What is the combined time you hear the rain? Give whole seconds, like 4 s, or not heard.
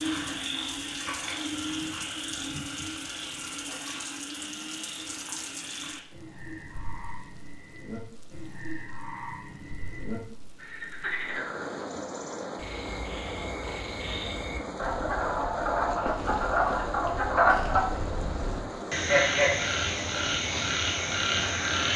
22 s.